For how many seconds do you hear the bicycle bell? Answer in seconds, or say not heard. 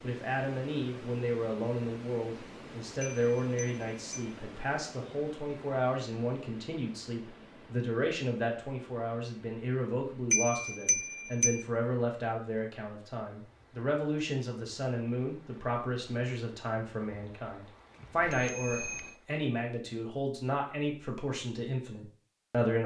4 s.